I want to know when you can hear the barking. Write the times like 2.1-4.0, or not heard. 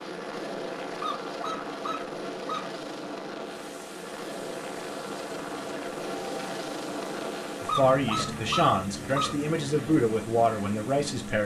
0.9-2.8, 7.7-9.4.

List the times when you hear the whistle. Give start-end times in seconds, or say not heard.
not heard.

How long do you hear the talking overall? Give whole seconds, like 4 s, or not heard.
4 s.